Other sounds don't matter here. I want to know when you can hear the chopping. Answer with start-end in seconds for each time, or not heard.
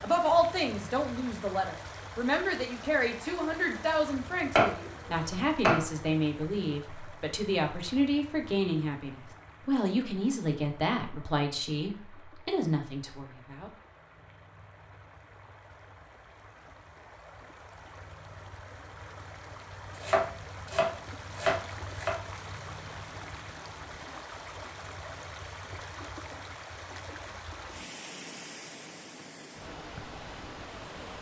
4.5-5.8, 20.0-22.1.